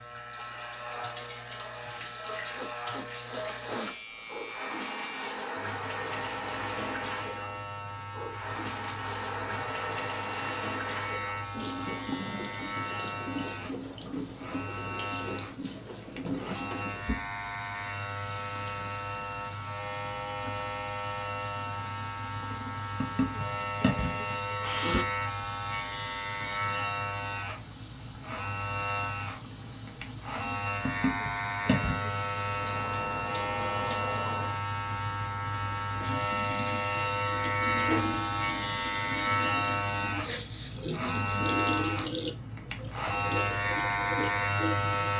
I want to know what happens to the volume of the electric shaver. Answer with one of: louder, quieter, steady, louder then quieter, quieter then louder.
louder.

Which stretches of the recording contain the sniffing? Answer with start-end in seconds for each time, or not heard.
2.5-4.0, 24.3-25.1, 40.2-40.8.